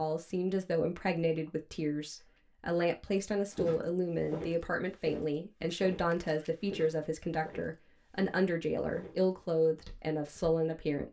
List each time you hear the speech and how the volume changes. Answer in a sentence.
The speech can be heard from 0.0 to 11.0 s, at a steady volume.